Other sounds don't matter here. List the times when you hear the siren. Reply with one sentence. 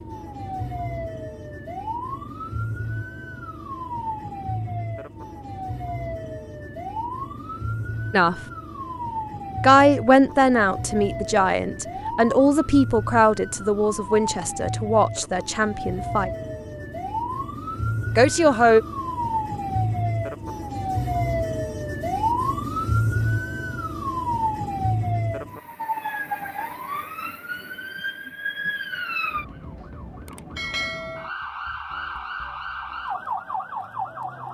The siren can be heard from 0.0 to 34.5 s.